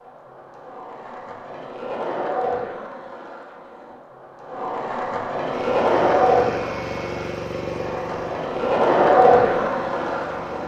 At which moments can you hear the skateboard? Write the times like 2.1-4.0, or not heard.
0.0-10.6.